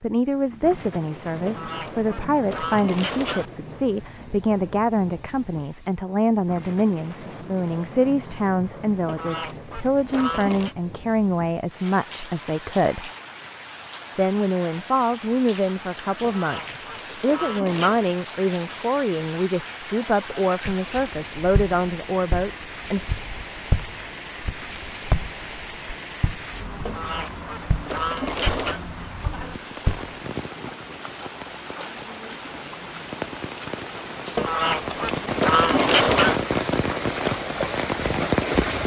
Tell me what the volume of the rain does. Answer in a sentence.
The loudness of the rain goes up.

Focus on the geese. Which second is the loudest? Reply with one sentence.
The loudest moment of the geese is at 36 seconds.